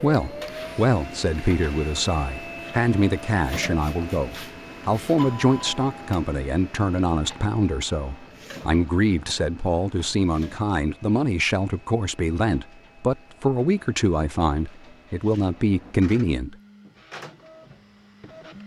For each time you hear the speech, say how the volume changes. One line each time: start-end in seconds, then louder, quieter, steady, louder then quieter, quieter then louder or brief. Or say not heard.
0.0-16.6 steady.